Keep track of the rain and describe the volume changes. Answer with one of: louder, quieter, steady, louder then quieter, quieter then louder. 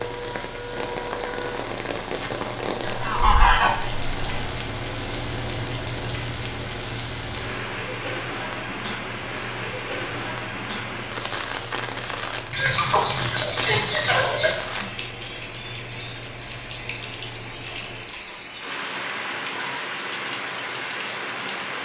steady.